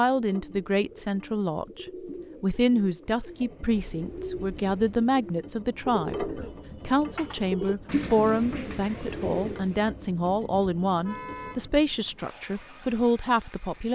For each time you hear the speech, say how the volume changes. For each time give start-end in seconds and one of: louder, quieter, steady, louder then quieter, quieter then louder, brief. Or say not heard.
0.0-13.9 steady.